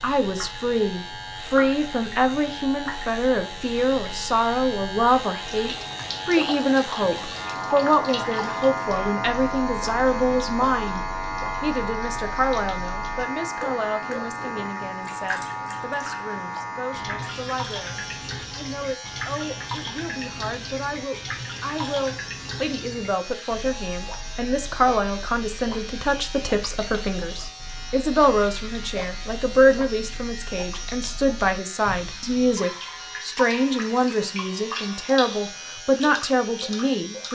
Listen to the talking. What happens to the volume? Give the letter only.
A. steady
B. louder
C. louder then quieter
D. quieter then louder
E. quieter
D.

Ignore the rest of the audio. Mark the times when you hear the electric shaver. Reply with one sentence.
The electric shaver can be heard from 0.0 to 37.3 s.